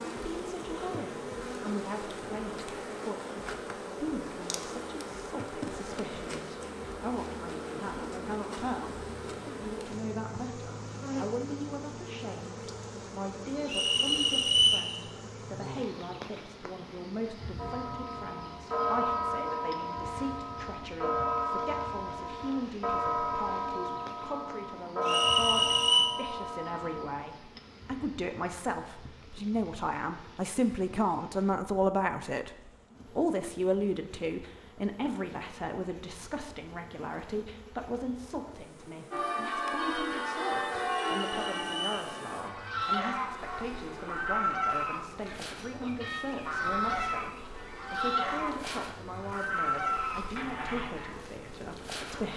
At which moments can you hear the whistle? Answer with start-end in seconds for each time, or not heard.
13.7-14.9, 25.0-26.1, 40.9-42.1.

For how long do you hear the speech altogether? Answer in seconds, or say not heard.
52 s.